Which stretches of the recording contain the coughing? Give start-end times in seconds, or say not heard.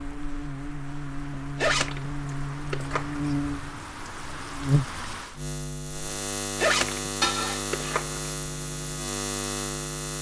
7.2-8.0.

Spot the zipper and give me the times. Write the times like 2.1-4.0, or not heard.
1.6-3.4, 6.5-8.2.